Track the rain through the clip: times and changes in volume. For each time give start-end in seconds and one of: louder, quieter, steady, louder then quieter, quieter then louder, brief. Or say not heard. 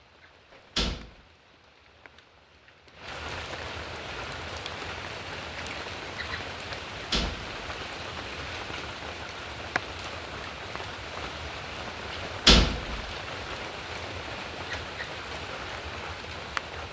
0.0-16.8 louder.